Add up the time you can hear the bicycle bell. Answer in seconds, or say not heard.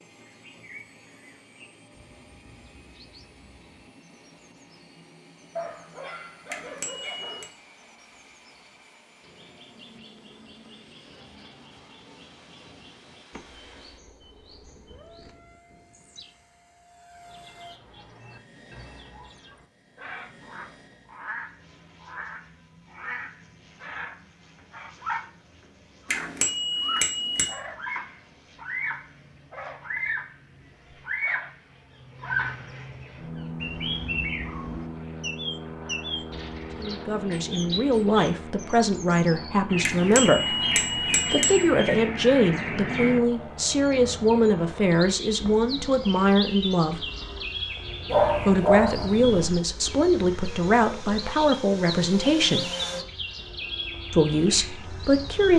4 s.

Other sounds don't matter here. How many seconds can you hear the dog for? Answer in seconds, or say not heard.
3 s.